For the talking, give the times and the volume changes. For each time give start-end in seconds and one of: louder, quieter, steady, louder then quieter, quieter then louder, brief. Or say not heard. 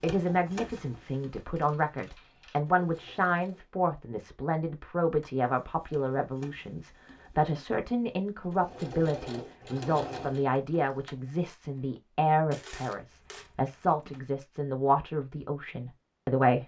0.0-16.6 steady.